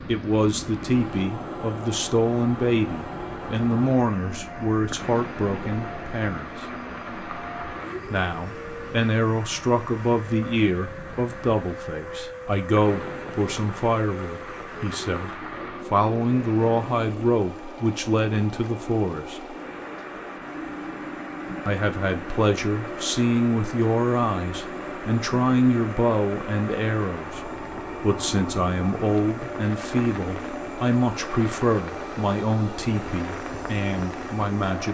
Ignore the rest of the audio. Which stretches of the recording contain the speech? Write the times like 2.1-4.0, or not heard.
0.1-6.7, 8.1-19.6, 21.6-34.8.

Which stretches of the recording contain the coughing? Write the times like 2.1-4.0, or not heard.
not heard.